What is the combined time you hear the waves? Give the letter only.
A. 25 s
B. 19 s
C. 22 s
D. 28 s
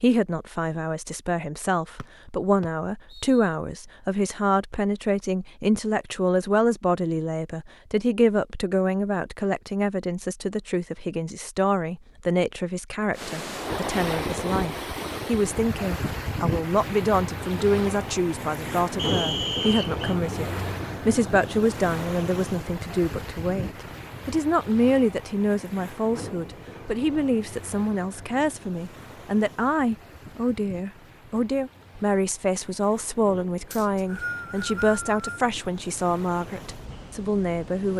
A.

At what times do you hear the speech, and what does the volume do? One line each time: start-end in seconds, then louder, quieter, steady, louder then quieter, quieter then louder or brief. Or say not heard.
0.0-37.9 steady.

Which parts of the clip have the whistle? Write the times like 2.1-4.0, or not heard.
1.9-3.5, 18.9-20.1, 33.7-35.4.